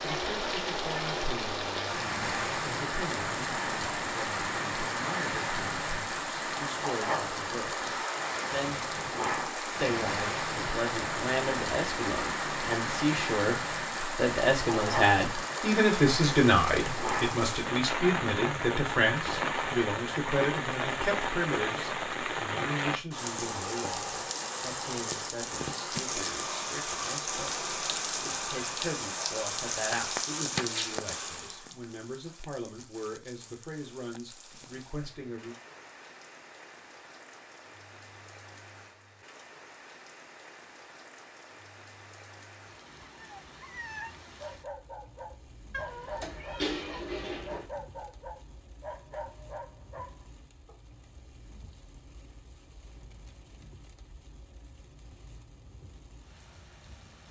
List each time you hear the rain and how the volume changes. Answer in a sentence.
The rain can be heard from 0.0 to 57.2 s, getting quieter.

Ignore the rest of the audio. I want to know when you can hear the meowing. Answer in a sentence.
The meowing can be heard from 45.7 to 47.6 s.